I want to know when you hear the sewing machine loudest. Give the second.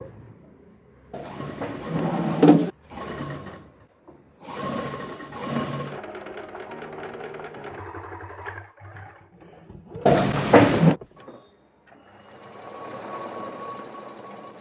5 s.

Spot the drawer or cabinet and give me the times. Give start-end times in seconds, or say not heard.
1.1-2.7, 10.1-10.9.